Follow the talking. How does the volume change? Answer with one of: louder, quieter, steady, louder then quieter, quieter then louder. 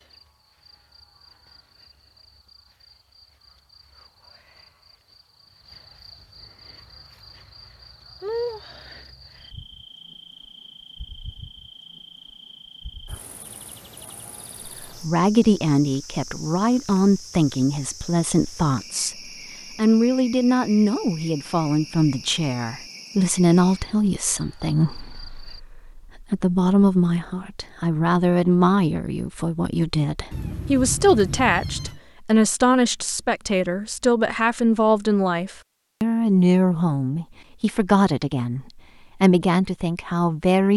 steady.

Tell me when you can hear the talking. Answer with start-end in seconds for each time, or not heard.
14.7-40.7.